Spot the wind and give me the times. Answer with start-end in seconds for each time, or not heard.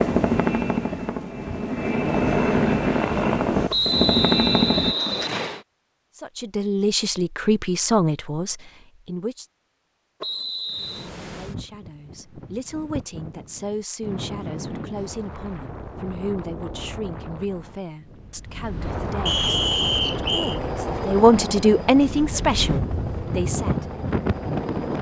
10.7-24.9.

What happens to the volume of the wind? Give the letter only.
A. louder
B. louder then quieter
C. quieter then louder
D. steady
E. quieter
A.